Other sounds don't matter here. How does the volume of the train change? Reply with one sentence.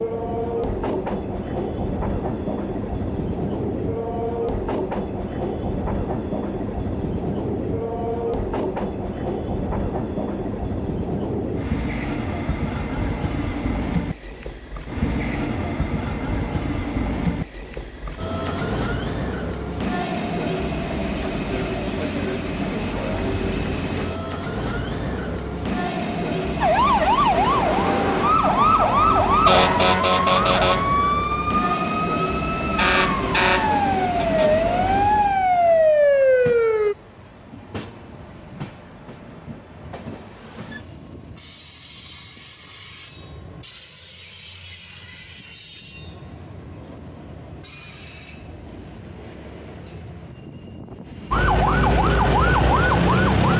The volume of the train goes down.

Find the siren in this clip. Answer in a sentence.
The siren can be heard from 26.6 to 37.0 s and from 51.3 to 53.5 s.